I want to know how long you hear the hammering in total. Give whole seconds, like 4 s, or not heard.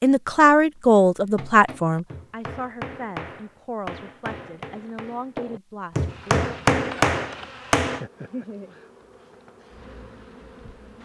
7 s.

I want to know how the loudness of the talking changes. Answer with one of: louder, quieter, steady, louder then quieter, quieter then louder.
quieter.